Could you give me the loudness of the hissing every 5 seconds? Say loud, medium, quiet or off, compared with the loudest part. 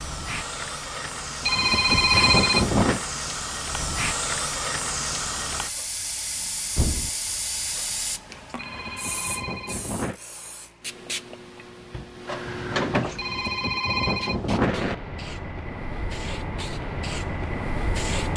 loud, loud, medium, loud.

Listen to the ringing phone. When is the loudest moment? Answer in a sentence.
The volume of the ringing phone peaks at 2 seconds.